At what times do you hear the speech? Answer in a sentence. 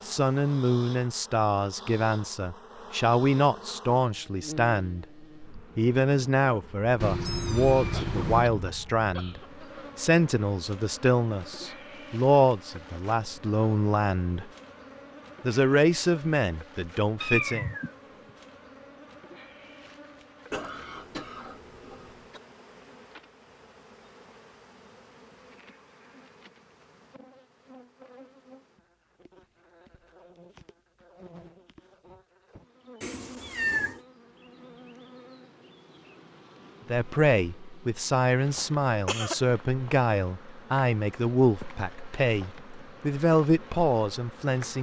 You can hear the speech from 0.0 to 14.5 s, from 15.4 to 17.6 s and from 36.9 to 44.7 s.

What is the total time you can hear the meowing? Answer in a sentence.
The meowing can be heard for 3 seconds in total.